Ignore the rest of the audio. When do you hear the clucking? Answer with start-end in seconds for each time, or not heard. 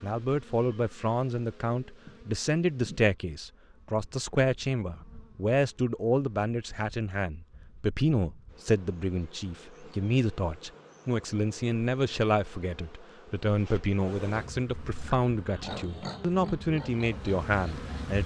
not heard.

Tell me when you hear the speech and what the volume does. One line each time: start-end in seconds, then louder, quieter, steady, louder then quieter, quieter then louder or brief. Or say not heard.
0.0-18.2 steady.